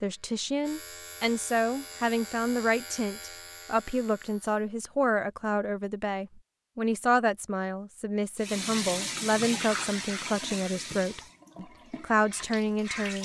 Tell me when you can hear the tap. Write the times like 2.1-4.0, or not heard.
8.3-13.2.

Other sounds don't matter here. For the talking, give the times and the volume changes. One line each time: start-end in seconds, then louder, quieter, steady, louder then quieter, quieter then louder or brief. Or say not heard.
0.0-13.2 steady.